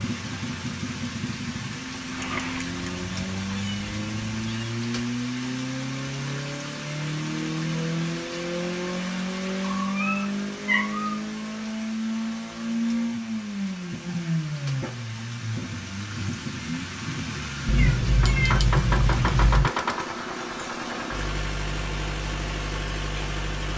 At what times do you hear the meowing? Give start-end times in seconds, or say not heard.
2.1-4.7, 9.7-11.2, 17.6-19.7.